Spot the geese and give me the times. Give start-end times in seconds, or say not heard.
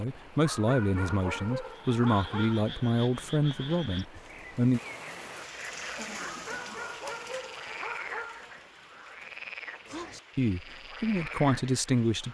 not heard.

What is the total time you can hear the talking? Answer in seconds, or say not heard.
7 s.